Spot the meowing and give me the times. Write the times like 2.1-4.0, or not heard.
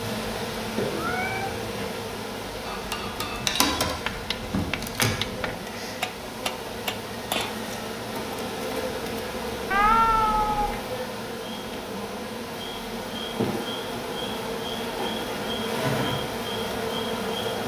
0.9-1.8, 9.7-10.8.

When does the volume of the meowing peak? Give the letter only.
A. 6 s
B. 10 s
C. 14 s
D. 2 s
B.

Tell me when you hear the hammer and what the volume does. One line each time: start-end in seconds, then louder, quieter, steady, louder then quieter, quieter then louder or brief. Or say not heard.
2.6-7.6 steady.